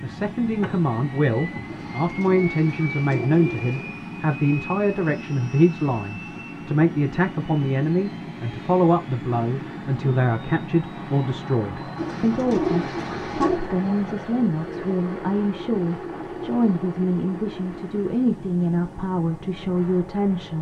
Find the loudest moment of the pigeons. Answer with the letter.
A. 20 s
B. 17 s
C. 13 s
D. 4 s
C.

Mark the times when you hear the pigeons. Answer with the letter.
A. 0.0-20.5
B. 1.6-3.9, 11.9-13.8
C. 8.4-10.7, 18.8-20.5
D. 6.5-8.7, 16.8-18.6
B.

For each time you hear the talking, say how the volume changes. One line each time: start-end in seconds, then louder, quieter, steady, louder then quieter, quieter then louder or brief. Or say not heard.
0.0-20.5 steady.